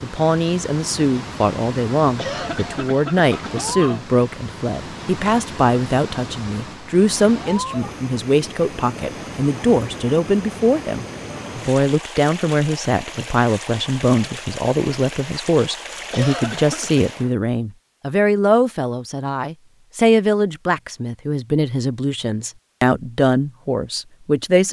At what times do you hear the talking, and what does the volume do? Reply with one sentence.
The talking can be heard from 0.0 to 24.6 s, at a steady volume.